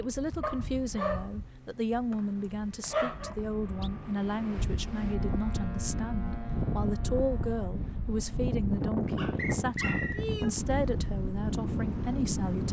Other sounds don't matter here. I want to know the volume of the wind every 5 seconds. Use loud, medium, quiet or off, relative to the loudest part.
quiet, loud, loud.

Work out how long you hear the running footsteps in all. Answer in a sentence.
The running footsteps can't be heard in this clip.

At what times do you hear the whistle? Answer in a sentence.
You can hear the whistle from 2.1 to 3.9 s and from 9.3 to 10.2 s.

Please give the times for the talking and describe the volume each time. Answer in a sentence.
You can hear the talking from 0.0 to 12.6 s, at a steady volume.